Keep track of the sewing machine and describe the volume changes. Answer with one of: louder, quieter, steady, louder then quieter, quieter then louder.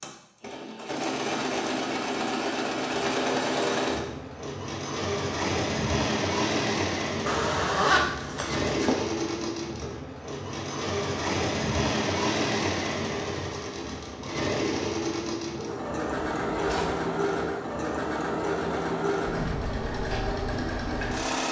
steady.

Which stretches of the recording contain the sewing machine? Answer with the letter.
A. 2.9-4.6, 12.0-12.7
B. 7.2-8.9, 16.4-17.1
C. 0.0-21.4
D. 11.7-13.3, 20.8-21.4
C.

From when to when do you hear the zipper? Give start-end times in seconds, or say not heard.
7.2-8.9, 16.4-17.1.